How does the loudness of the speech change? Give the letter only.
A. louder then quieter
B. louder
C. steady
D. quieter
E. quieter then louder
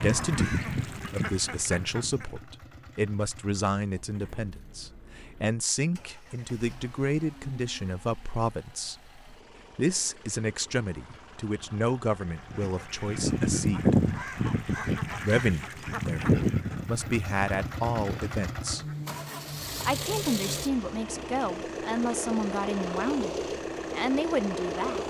C.